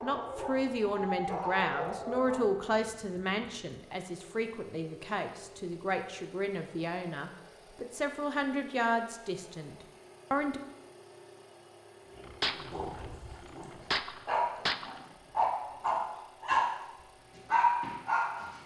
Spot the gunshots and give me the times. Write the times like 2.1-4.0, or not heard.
12.4-15.0.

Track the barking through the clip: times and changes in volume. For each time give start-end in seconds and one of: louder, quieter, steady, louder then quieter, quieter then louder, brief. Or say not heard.
0.0-2.5 brief
12.2-16.6 quieter then louder
17.4-18.6 brief.